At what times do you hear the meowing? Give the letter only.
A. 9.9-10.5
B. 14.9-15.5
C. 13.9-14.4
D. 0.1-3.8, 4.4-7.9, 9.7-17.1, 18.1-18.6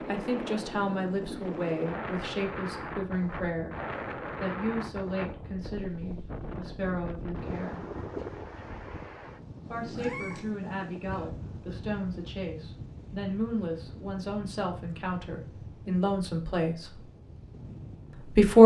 A.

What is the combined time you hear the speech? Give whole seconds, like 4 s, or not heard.
15 s.